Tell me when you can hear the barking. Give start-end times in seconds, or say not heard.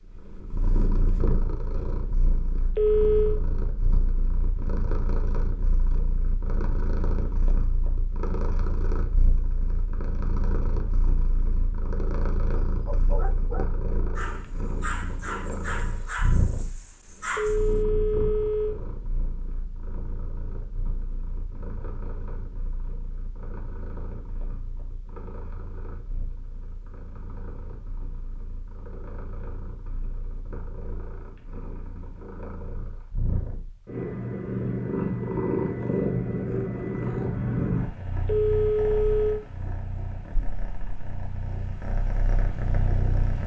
12.6-17.8.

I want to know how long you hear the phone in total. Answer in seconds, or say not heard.
3 s.